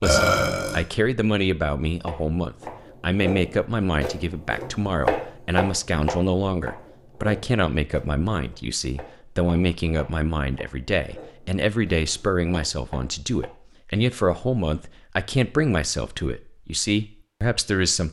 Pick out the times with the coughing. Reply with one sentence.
The coughing can't be heard in this clip.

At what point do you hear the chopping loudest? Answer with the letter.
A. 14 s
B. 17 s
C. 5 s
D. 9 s
C.